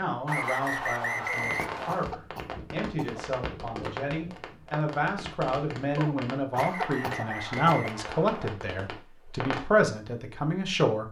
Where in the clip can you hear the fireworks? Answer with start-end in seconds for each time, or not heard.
1.3-9.7.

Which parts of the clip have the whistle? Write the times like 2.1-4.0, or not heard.
0.2-2.1, 6.5-8.6.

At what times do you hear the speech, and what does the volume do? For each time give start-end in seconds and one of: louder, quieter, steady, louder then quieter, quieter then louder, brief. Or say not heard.
0.0-11.0 louder.